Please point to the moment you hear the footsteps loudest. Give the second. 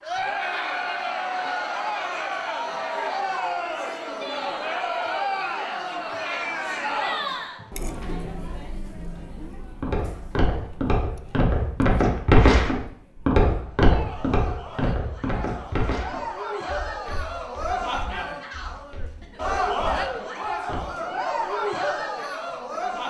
12 s.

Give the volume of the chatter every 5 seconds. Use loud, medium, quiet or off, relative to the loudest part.
loud, loud, quiet, loud, loud.